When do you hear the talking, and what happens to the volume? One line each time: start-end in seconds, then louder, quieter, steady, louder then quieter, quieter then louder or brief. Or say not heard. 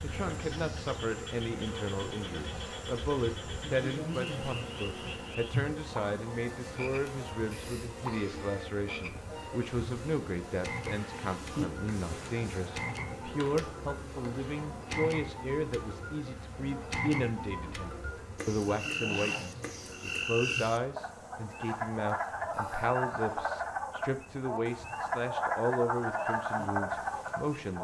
0.0-27.7 steady.